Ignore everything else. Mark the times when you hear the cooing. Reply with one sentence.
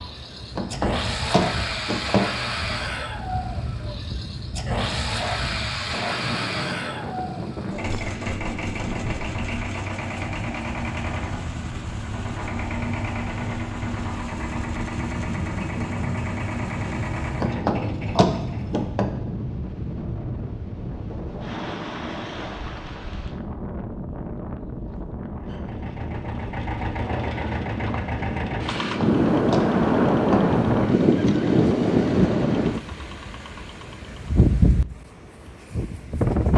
The cooing can't be heard in this clip.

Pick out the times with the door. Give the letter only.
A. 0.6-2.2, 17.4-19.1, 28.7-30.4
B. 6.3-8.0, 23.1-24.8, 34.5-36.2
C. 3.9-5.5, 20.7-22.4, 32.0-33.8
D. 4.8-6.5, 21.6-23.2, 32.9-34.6
A.